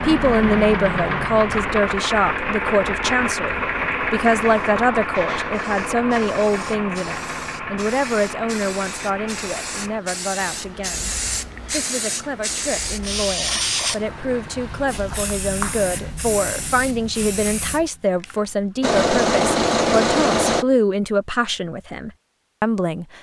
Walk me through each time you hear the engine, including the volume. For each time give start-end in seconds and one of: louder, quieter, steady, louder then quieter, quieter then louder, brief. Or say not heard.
0.0-14.8 quieter
18.8-20.6 brief.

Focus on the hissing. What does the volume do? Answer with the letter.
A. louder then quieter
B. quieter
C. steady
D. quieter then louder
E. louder
A.